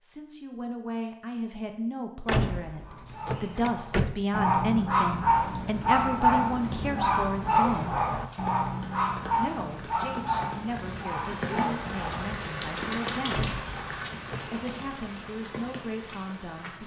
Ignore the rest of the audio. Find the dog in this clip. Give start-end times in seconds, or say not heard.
2.8-13.7.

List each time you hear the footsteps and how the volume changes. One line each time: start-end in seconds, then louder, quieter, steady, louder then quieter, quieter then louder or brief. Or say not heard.
not heard.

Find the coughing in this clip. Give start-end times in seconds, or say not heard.
not heard.